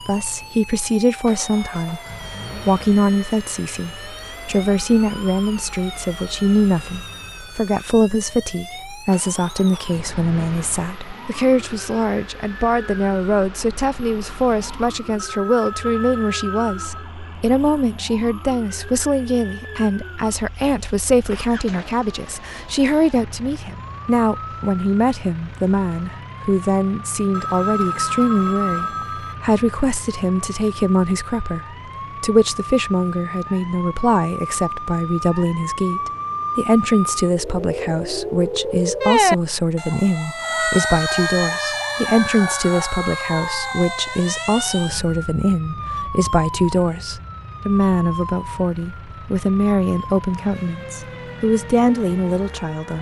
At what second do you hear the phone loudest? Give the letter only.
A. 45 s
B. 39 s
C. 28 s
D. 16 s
C.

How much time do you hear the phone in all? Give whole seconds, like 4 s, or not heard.
4 s.